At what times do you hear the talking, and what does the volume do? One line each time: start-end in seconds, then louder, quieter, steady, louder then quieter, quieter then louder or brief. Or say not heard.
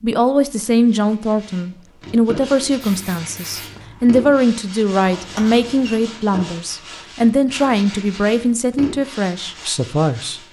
0.0-10.4 steady.